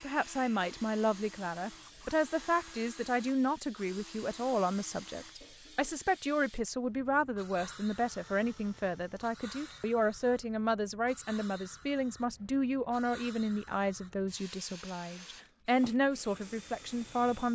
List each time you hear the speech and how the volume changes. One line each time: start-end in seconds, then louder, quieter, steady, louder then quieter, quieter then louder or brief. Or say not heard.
0.0-17.5 steady.